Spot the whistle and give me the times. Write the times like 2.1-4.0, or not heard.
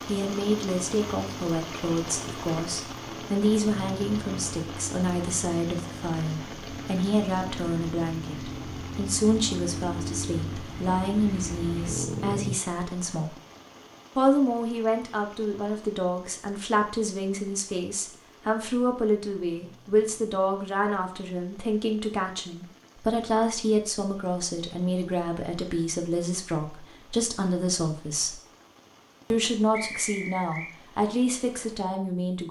29.7-30.8.